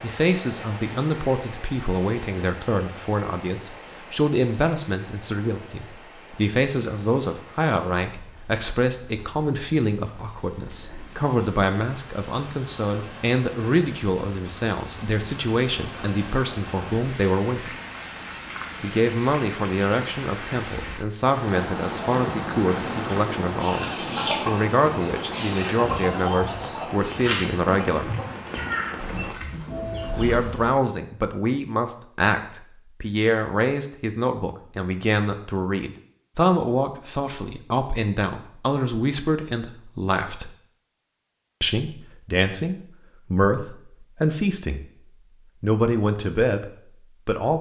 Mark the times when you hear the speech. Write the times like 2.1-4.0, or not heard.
0.0-17.8, 18.8-28.1, 30.1-40.5, 41.6-44.9, 45.6-47.5.